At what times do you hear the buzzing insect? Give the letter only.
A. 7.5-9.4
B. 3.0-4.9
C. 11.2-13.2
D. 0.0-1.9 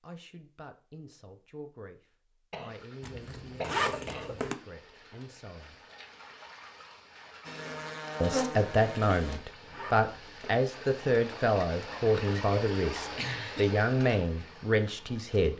A.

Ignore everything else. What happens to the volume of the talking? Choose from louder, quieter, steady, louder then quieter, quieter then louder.
louder.